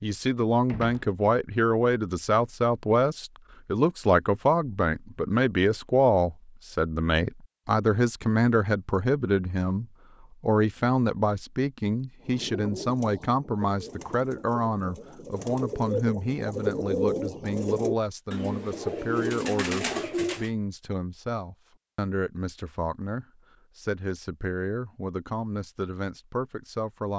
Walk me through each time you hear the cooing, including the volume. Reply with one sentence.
You can hear the cooing from 12.2 to 20.5 s, getting louder.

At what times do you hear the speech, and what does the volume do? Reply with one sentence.
You can hear the speech from 0.0 to 27.1 s, getting quieter.